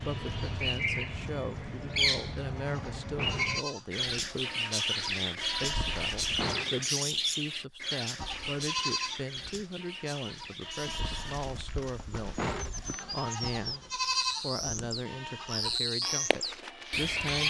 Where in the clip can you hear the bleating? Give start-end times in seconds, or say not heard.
0.0-6.5, 8.2-17.4.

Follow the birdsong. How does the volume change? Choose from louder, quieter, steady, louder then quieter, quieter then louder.
quieter then louder.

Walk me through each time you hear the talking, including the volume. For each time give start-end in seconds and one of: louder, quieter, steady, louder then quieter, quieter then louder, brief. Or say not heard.
0.0-17.4 steady.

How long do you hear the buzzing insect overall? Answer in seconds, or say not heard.
not heard.